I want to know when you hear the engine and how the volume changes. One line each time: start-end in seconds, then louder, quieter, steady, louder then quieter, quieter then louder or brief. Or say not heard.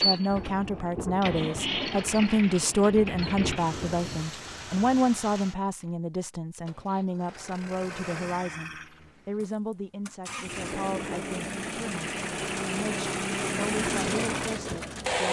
0.0-15.2 quieter then louder.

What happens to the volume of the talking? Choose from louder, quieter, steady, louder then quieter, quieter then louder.
quieter.